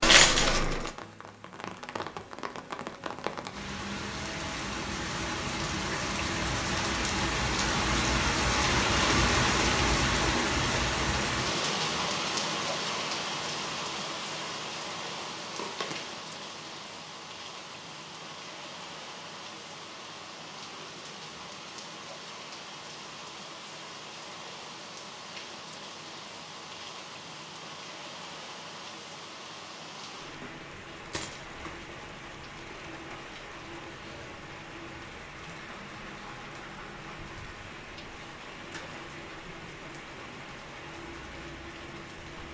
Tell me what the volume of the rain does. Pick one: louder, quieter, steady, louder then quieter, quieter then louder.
quieter.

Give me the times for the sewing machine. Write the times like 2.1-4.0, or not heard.
not heard.